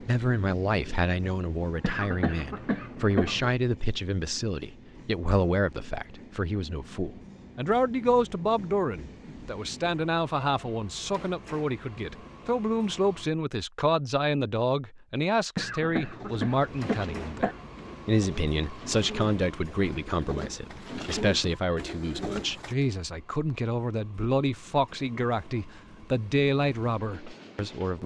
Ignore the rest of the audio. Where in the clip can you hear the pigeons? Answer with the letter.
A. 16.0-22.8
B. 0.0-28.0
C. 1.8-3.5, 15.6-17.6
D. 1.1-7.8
A.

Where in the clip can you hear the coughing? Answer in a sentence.
The coughing can be heard from 1.8 to 3.5 s and from 15.6 to 17.6 s.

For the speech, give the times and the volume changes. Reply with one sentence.
You can hear the speech from 0.0 to 28.0 s, at a steady volume.